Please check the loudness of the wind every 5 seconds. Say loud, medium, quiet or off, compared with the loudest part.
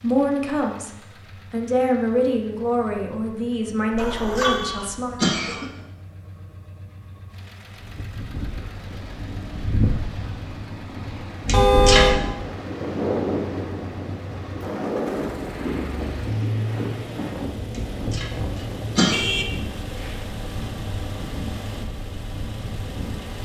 off, loud, loud, loud, medium.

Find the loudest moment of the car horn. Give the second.
12 s.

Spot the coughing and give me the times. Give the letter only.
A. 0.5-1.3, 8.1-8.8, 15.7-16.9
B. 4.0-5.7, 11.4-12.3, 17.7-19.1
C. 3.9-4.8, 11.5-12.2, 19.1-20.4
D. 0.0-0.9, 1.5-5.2
B.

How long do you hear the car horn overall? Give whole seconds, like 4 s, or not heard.
3 s.